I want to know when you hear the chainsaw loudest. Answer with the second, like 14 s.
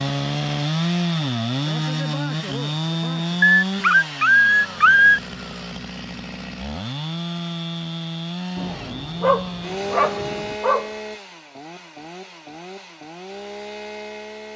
1 s.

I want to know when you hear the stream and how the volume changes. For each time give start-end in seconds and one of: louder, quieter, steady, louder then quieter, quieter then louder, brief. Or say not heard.
not heard.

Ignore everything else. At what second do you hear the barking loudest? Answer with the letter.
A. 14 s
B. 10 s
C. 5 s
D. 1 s
C.